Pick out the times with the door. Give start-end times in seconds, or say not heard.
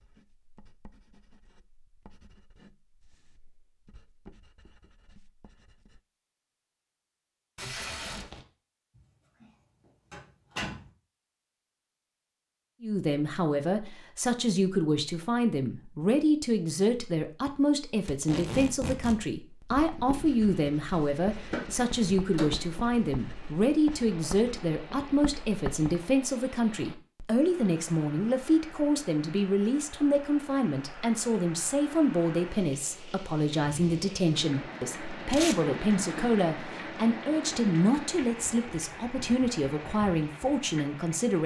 8.9-9.4, 10.1-10.9, 21.4-22.8.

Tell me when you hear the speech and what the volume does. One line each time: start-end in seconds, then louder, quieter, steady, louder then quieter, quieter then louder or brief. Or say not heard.
12.8-41.4 steady.